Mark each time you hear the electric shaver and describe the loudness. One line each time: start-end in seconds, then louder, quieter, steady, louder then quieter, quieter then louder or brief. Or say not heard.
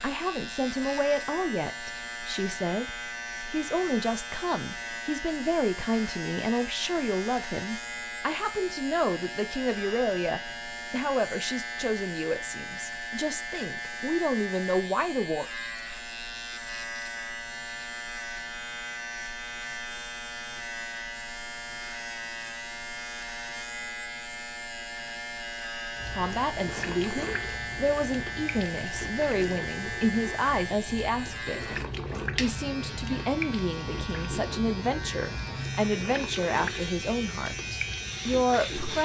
0.0-39.0 steady.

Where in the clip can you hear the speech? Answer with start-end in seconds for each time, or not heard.
0.0-15.4, 26.1-39.0.